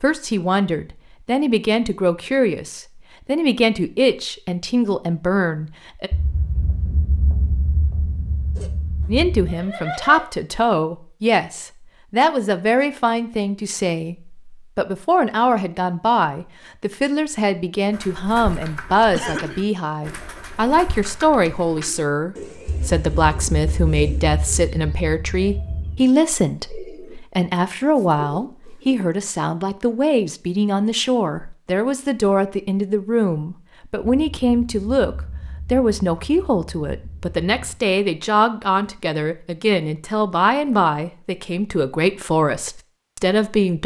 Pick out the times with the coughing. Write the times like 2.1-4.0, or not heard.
19.1-19.6.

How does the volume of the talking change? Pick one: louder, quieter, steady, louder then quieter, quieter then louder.
steady.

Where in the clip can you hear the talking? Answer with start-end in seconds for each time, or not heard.
0.0-6.1, 9.1-43.8.